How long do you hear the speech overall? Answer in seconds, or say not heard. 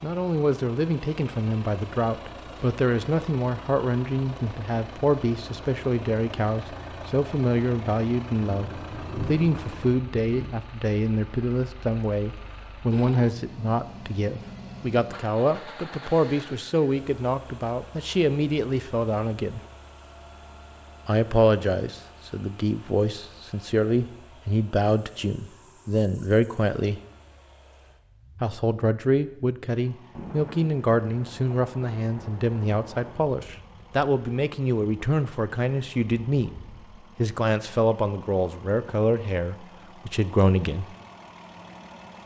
38 s.